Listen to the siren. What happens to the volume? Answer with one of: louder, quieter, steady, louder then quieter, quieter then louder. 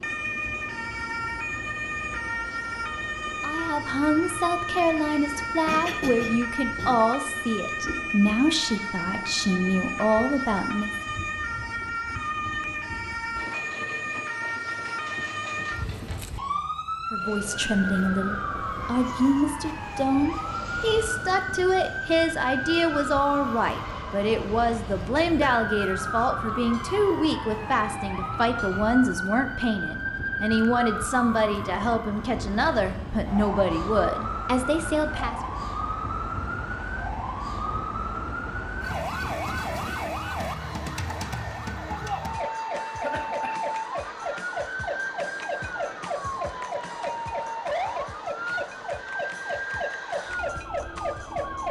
steady.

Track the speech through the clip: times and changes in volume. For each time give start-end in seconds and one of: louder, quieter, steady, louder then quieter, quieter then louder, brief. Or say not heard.
3.4-10.9 steady
17.1-35.4 steady.